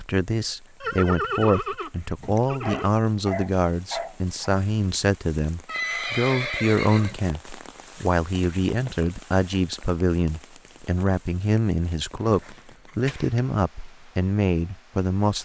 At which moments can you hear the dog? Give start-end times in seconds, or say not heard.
2.2-4.5.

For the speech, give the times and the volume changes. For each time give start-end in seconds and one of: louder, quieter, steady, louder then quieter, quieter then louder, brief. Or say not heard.
0.0-15.4 steady.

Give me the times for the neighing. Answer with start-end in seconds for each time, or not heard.
0.8-2.9, 5.7-7.2, 12.2-13.4.